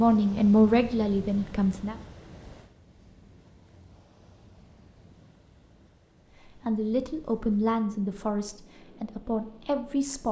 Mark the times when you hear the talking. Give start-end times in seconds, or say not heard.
0.0-1.9, 6.7-10.2.